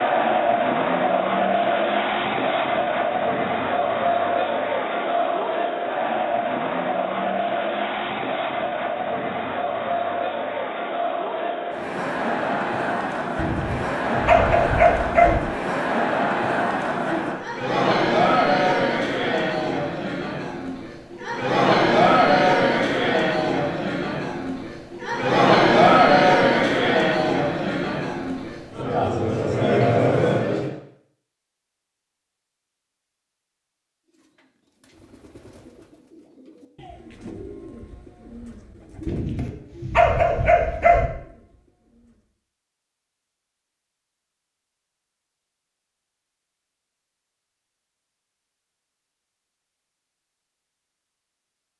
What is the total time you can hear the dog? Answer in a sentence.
You can hear the dog for 4 seconds altogether.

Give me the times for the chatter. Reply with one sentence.
The chatter can be heard from 0.0 to 30.8 s.